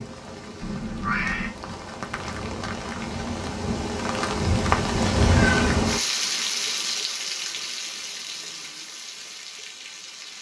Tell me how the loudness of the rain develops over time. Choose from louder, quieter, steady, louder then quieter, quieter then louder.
louder then quieter.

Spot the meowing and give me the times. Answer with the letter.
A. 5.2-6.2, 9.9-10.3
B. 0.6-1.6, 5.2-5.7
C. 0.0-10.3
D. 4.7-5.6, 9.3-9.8
B.